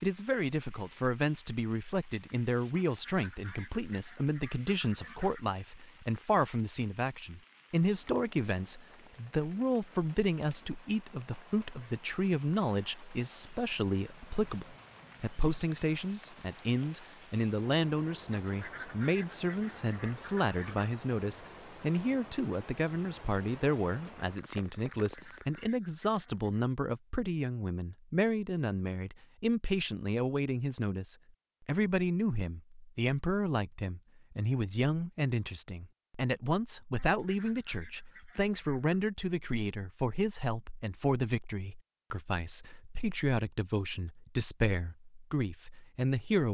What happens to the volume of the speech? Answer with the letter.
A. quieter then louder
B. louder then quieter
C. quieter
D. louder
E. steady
E.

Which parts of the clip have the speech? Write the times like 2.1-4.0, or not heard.
0.0-46.4.